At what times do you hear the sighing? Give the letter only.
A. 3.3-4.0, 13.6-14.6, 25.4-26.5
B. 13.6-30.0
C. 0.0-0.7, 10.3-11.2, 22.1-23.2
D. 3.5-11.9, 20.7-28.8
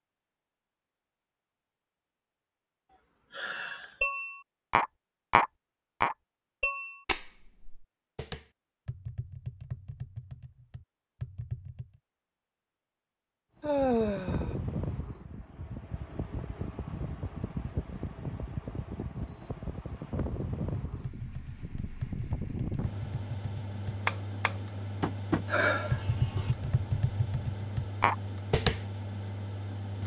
A.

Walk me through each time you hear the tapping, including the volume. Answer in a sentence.
The tapping can be heard from 3.5 to 11.9 s, getting quieter; and from 20.7 to 28.8 s, getting louder.